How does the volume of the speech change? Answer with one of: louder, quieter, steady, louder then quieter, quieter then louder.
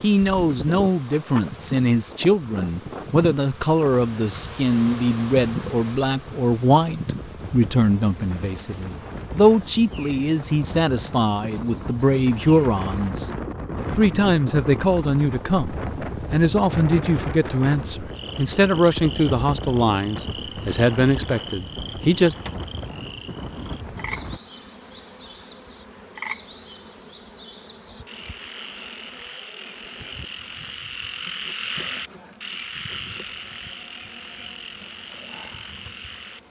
steady.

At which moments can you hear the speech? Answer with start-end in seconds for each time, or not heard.
0.0-13.3, 13.9-22.4.